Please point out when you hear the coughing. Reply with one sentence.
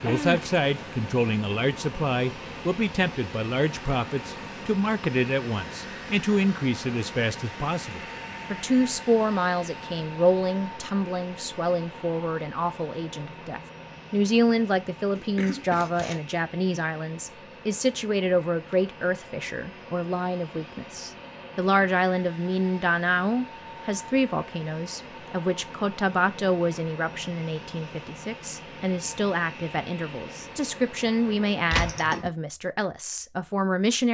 You can hear the coughing from 0.1 to 0.6 s, from 15.2 to 16.2 s and from 31.7 to 32.3 s.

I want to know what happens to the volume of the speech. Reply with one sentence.
The loudness of the speech stays about the same.